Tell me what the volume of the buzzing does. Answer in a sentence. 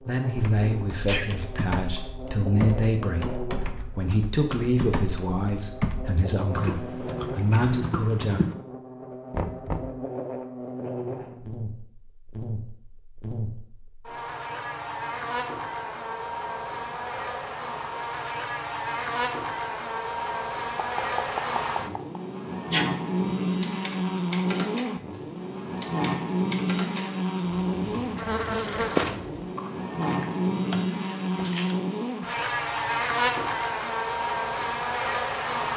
The volume of the buzzing goes up.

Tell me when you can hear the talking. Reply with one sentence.
You can hear the talking from 0.0 to 8.4 s.